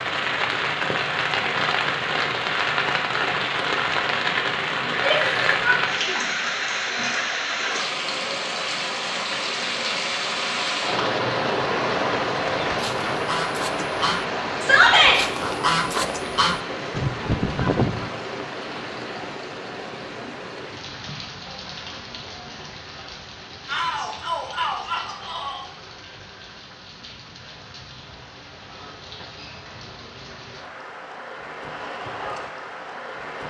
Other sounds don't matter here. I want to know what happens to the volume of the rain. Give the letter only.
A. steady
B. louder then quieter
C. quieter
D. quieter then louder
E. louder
C.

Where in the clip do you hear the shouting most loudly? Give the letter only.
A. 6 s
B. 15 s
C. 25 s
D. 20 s
B.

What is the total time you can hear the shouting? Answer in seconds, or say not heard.
4 s.